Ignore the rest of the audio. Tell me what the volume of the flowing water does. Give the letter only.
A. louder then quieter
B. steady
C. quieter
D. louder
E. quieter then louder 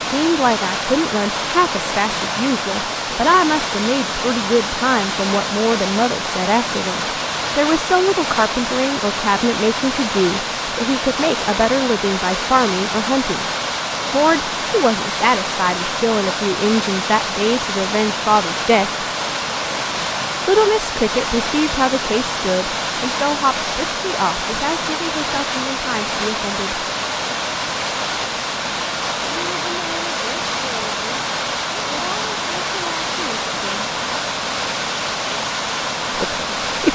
B.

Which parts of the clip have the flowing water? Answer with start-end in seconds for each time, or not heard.
0.0-36.9.